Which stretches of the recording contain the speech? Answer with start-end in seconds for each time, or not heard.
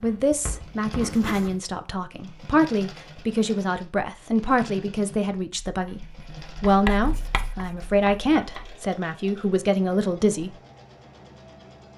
0.0-10.5.